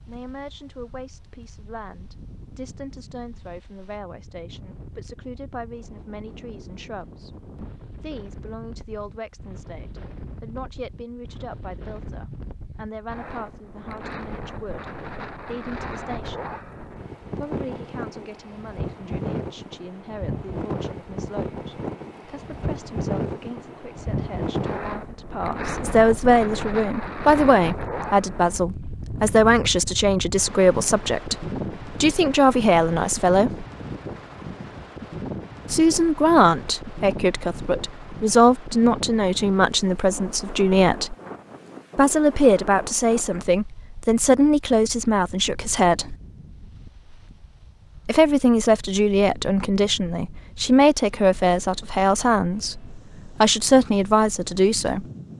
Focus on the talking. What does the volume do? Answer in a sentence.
The loudness of the talking goes up.